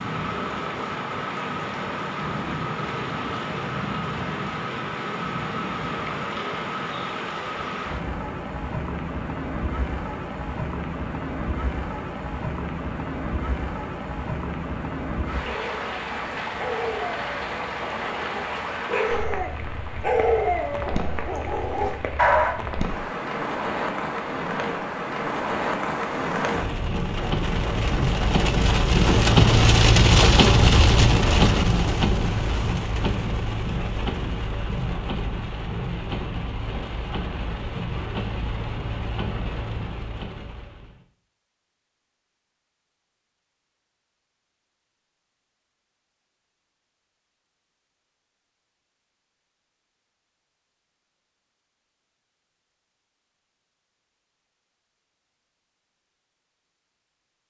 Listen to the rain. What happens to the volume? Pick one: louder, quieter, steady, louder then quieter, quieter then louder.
louder then quieter.